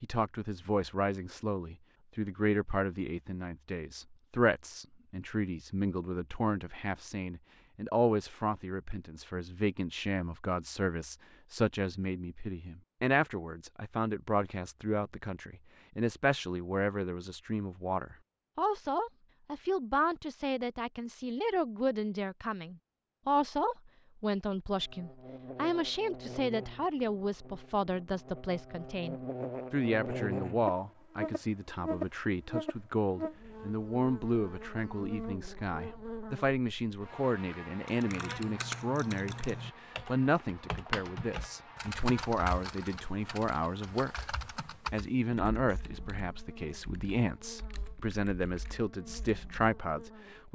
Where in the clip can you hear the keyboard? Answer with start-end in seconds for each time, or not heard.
37.9-49.8.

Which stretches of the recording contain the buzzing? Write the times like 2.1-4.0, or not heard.
24.8-50.5.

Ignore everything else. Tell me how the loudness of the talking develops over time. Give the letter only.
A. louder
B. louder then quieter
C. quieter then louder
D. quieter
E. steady
E.